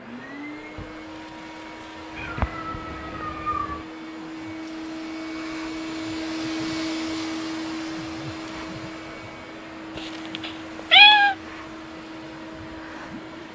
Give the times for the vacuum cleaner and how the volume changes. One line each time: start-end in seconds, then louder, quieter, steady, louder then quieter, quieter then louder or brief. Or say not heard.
0.0-13.5 louder then quieter.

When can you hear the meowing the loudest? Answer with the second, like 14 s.
11 s.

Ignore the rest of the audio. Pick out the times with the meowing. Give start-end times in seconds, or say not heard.
2.1-3.9, 9.9-11.3.